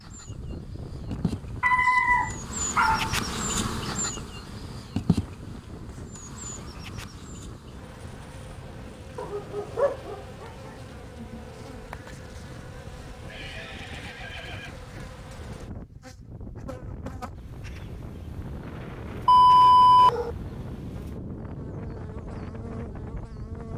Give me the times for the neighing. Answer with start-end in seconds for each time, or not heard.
13.2-14.8.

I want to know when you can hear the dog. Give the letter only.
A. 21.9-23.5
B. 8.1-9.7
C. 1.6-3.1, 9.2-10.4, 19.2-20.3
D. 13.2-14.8
C.